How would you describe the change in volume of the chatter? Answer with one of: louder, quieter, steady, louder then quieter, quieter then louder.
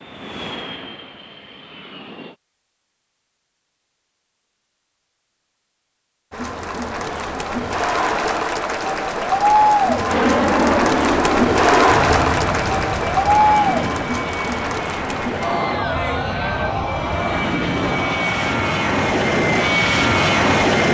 louder then quieter.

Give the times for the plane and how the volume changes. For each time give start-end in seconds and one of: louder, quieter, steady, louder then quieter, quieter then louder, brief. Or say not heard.
0.0-2.4 brief
10.1-20.8 quieter then louder.